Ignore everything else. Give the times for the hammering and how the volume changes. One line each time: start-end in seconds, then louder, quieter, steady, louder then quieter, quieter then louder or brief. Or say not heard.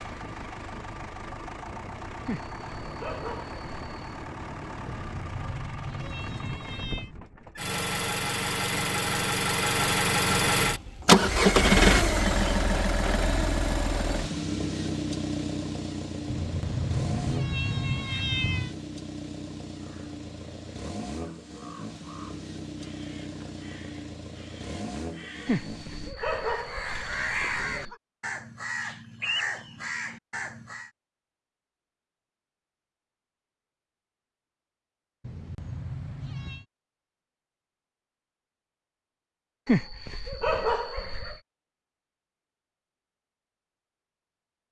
not heard.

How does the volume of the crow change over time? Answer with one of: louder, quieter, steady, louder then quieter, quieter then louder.
louder.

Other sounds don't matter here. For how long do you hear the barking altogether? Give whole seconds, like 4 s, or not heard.
6 s.